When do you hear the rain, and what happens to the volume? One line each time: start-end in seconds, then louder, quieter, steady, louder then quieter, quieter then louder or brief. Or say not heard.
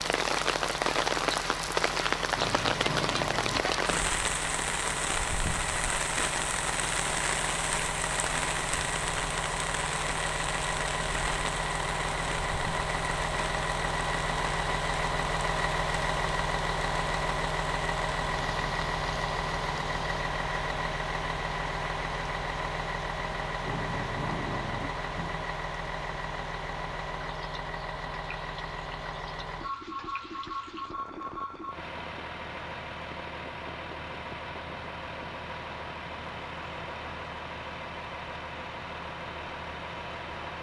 0.0-40.5 quieter.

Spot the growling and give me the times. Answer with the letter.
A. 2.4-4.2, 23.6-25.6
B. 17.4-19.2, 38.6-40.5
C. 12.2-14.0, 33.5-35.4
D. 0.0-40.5
A.